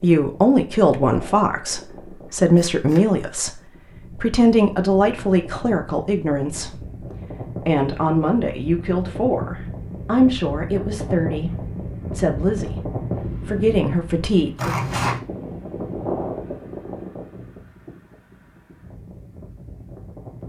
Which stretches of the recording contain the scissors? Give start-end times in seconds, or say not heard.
2.5-3.0, 14.6-15.2.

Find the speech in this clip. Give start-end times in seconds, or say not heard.
0.0-7.0, 7.7-14.8.